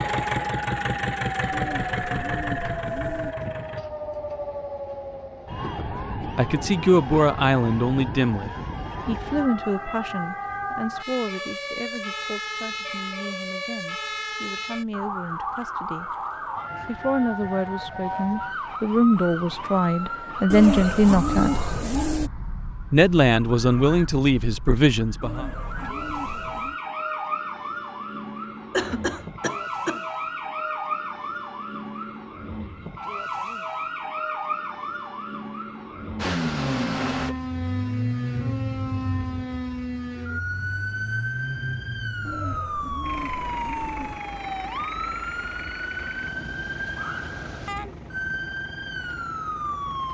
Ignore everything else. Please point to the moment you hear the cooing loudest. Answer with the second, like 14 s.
21 s.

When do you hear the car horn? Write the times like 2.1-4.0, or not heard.
not heard.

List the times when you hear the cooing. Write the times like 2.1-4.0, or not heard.
1.5-3.4, 20.5-22.3, 25.2-26.8, 42.2-44.2.